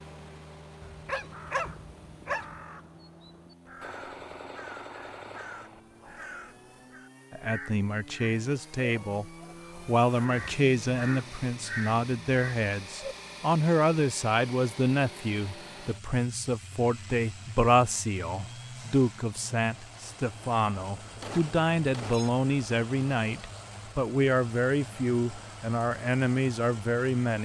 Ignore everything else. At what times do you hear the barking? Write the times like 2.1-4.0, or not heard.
0.8-2.5.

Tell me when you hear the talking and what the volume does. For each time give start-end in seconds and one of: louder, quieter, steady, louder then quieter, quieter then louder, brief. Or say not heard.
7.3-27.4 steady.